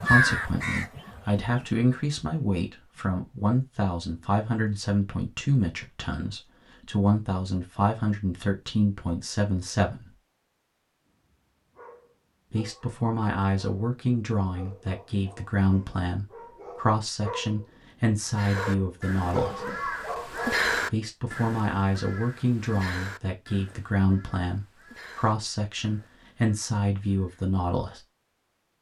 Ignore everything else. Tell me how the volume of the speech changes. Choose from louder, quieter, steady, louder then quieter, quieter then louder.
steady.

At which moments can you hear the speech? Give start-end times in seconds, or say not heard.
0.0-10.2, 12.5-19.6, 20.9-28.0.